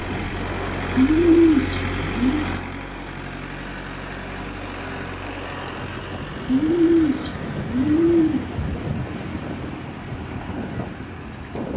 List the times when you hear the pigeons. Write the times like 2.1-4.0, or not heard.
0.9-2.5, 6.5-8.7.